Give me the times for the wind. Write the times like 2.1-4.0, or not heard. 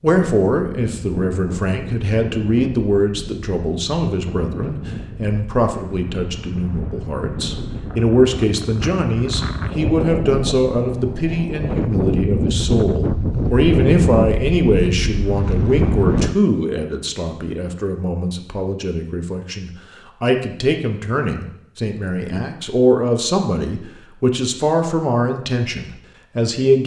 0.1-16.4.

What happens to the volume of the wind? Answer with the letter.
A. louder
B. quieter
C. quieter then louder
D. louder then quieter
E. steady
A.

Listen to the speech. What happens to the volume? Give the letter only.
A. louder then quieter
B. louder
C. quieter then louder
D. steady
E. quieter
D.